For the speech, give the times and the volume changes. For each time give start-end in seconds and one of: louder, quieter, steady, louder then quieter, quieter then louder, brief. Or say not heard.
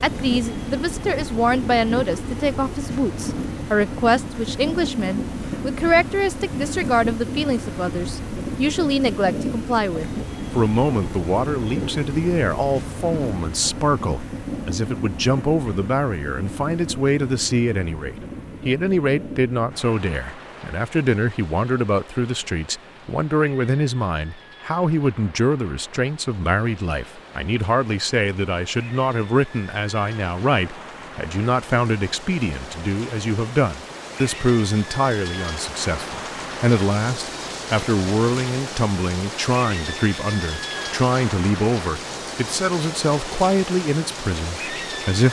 0.0-45.2 steady.